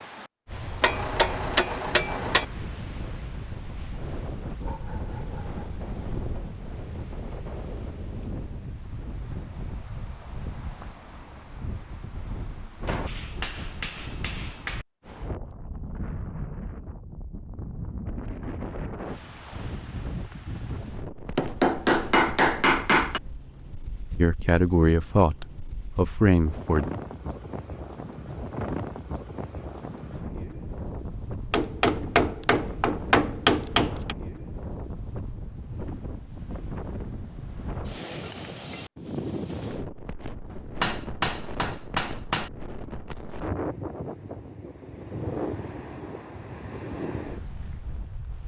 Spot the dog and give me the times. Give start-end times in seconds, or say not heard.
3.6-6.5.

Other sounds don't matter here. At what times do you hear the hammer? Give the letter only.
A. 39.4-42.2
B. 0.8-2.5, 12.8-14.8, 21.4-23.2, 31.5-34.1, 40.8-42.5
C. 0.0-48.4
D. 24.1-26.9
B.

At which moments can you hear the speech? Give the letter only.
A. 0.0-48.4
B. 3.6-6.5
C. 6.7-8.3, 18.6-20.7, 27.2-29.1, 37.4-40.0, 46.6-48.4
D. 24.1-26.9
D.